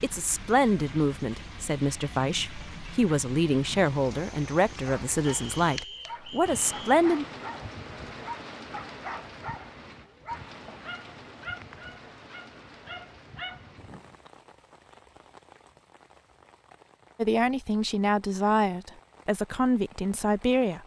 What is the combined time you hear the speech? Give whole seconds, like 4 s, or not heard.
11 s.